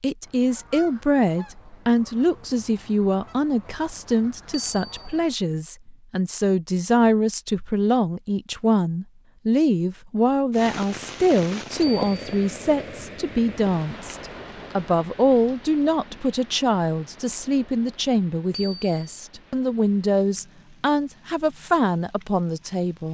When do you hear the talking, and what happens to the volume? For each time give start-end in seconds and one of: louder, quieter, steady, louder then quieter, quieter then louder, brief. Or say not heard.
0.0-23.1 steady.